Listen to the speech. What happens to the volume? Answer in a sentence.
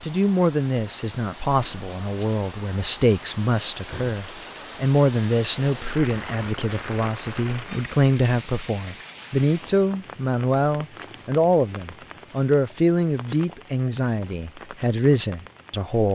The loudness of the speech stays about the same.